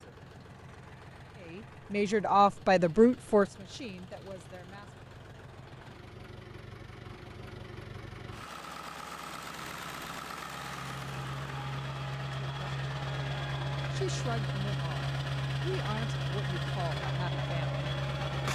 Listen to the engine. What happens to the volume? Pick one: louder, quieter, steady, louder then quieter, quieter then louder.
louder.